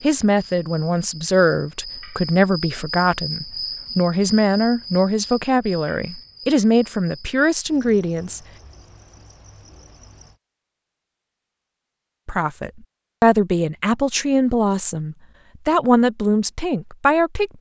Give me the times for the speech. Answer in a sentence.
The speech can be heard from 0.0 to 8.4 s and from 12.2 to 17.5 s.